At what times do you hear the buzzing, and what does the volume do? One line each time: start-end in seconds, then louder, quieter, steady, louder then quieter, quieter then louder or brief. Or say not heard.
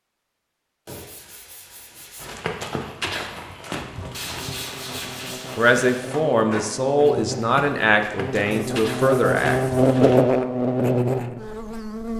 3.8-12.1 louder.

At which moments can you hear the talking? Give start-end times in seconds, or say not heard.
5.5-10.1.